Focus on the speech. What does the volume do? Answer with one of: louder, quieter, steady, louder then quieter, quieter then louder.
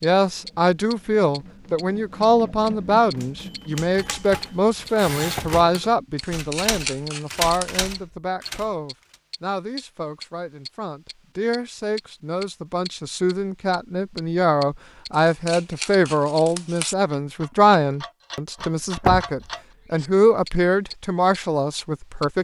quieter then louder.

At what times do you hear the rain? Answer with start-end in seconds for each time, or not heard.
not heard.